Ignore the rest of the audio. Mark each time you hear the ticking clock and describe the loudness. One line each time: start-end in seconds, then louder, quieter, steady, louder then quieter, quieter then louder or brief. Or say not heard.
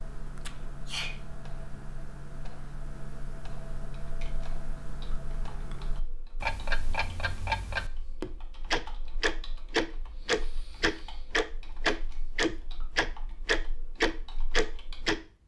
0.0-15.2 louder.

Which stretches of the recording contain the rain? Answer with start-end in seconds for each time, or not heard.
not heard.